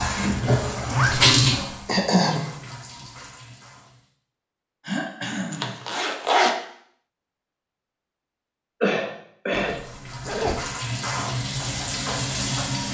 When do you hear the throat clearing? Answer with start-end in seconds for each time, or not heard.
1.9-2.5, 4.8-5.8, 8.8-9.8.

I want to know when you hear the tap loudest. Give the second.
1 s.